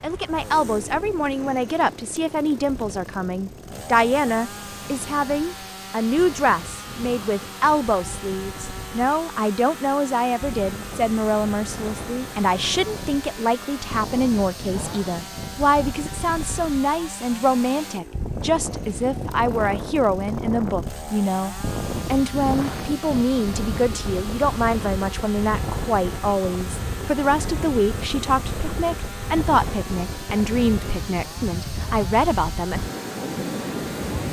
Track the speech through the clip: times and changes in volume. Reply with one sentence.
The speech can be heard from 0.0 to 32.8 s, at a steady volume.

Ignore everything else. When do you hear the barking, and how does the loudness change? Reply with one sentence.
You can't hear the barking here.